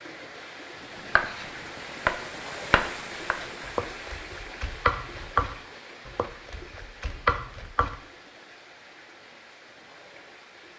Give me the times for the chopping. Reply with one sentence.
You can hear the chopping from 1.1 to 8.0 s.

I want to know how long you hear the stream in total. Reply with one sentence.
You can hear the stream for 11 seconds altogether.